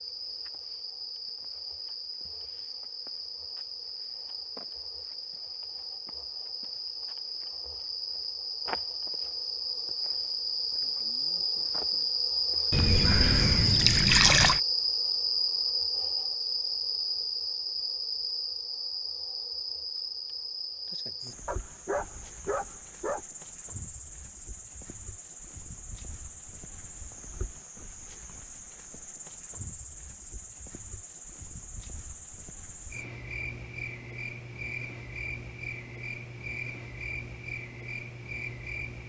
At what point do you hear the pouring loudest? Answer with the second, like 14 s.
14 s.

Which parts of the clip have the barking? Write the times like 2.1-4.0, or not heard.
21.4-23.2.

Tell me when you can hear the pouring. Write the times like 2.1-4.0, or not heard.
12.7-14.6.